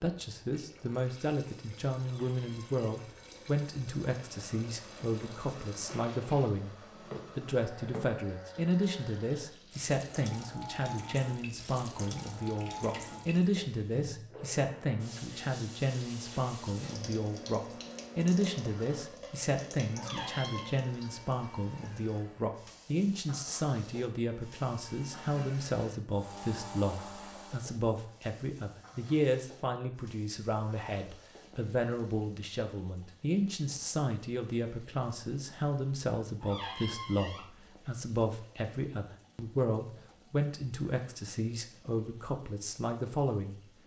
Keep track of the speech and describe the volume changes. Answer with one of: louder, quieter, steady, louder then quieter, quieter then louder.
steady.